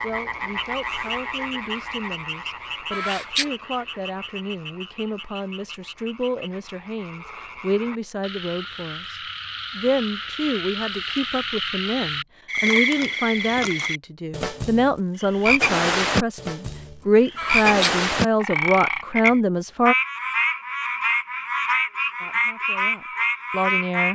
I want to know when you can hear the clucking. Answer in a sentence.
You can hear the clucking from 2.9 to 3.5 s and from 17.4 to 17.9 s.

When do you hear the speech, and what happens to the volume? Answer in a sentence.
You can hear the speech from 0.0 to 19.9 s, getting louder; and briefly from 22.2 to 24.1 s.